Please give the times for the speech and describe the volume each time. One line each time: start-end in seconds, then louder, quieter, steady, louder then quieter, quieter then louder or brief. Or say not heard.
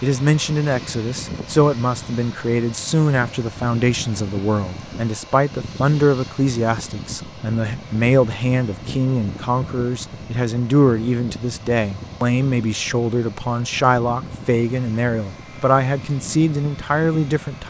0.0-17.6 steady.